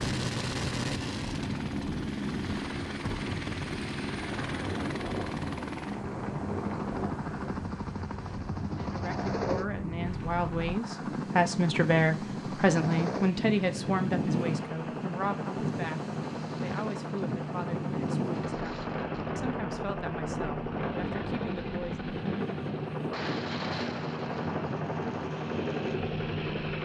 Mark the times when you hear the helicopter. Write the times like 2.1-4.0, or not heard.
0.0-26.8.